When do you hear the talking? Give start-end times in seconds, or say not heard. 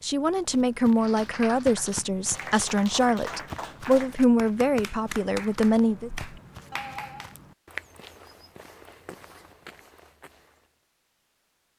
0.0-6.1.